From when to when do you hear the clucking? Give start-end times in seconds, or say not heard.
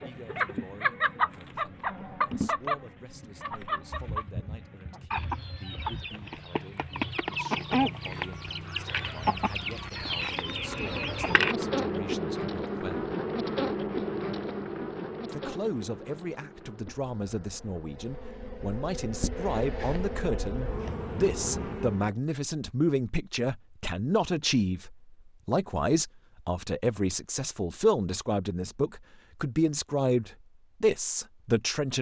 0.0-11.6.